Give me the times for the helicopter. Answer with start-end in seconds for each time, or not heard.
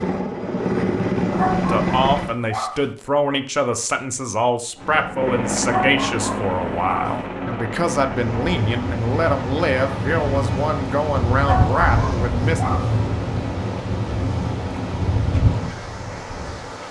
0.0-2.4, 4.8-10.8.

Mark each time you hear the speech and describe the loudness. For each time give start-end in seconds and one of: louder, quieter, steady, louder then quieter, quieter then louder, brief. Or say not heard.
1.5-12.6 steady.